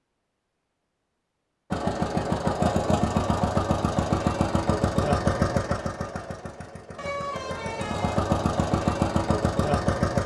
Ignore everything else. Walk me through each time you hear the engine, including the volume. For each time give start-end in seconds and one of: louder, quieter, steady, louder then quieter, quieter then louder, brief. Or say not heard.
1.7-10.2 quieter then louder.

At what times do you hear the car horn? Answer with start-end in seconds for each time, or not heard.
7.0-8.2.